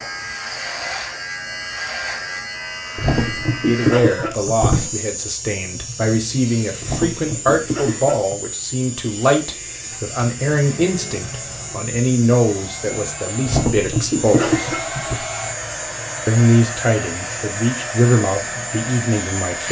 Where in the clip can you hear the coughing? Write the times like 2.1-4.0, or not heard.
3.0-4.9, 6.8-8.5, 13.4-15.2.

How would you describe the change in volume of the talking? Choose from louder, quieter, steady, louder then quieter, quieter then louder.
steady.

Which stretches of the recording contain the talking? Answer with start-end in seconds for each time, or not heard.
3.6-14.7, 16.2-19.6.